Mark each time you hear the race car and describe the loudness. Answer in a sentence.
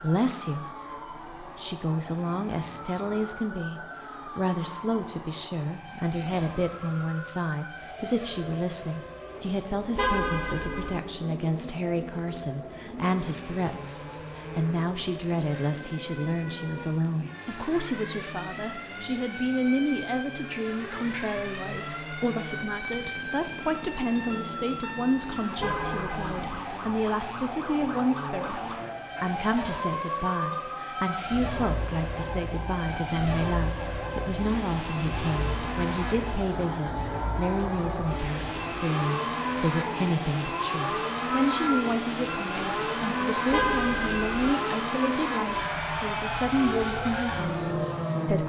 You can hear the race car from 0.0 to 48.4 s, getting louder.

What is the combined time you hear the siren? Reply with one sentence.
The siren can be heard for 48 seconds in total.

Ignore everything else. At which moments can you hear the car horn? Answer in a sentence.
You can hear the car horn from 9.9 to 11.0 s, from 25.6 to 26.5 s and from 43.5 to 44.5 s.